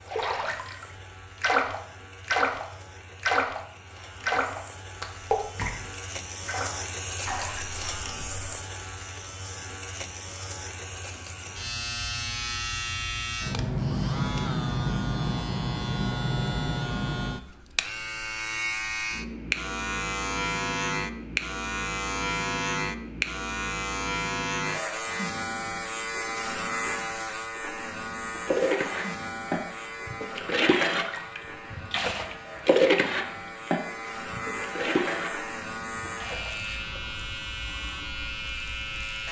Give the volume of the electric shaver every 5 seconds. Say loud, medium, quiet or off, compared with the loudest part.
quiet, medium, loud, loud, loud, loud, medium, medium.